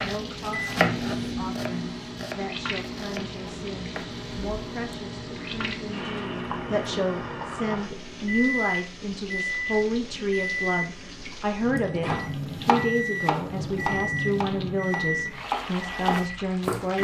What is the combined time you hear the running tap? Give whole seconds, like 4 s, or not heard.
17 s.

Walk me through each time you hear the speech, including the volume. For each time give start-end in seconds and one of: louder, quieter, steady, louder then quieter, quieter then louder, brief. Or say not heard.
0.0-16.9 louder.